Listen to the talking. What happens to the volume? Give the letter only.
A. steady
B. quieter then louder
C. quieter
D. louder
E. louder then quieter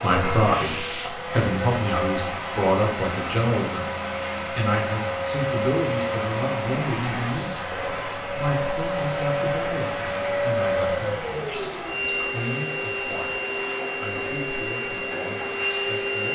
C.